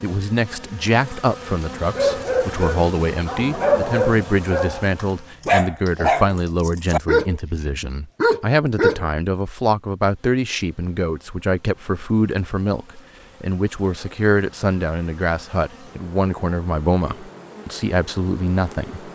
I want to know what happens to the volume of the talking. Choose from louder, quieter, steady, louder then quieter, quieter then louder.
steady.